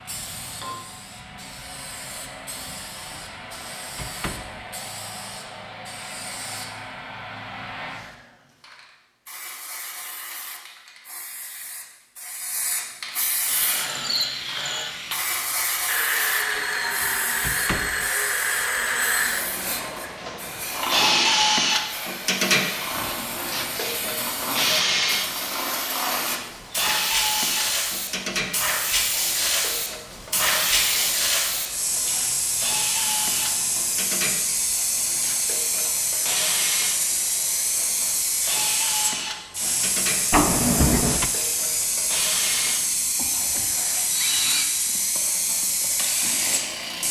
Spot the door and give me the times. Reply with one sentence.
You can hear the door from 3.1 to 4.7 s, from 16.6 to 18.1 s and from 40.3 to 41.3 s.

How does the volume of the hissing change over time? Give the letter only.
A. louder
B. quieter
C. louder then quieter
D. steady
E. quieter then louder
A.